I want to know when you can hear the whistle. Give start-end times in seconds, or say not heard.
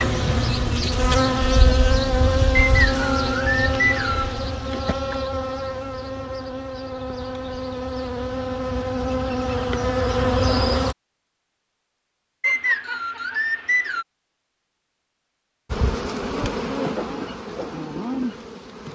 2.5-4.3, 12.4-14.1.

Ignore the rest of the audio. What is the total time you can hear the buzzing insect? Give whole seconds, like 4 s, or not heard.
14 s.